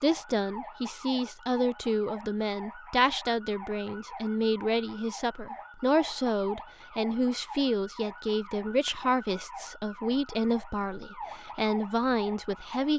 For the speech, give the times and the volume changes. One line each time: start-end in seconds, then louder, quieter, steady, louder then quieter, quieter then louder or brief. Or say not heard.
0.0-12.9 steady.